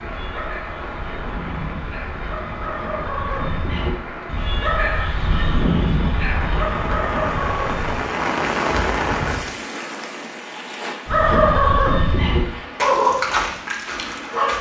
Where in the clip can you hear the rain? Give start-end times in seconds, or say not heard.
0.0-14.5.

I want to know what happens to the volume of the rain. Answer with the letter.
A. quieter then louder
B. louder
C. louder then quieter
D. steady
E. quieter
C.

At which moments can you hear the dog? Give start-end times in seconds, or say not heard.
0.0-8.0, 11.1-14.5.